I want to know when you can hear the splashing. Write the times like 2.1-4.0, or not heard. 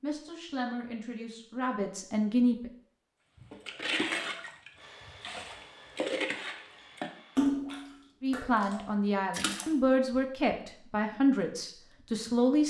3.4-9.7.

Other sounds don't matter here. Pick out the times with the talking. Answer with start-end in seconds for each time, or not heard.
0.0-2.7, 8.2-12.6.